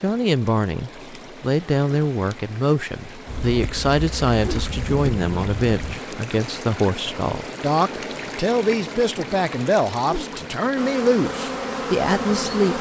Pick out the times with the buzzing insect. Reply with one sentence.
The buzzing insect can be heard from 3.2 to 6.2 s and from 10.8 to 12.7 s.